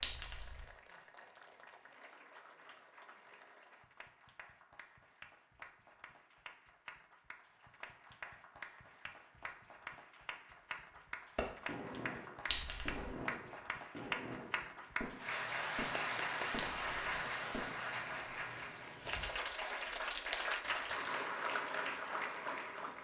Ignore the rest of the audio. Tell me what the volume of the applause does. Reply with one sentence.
The volume of the applause goes up.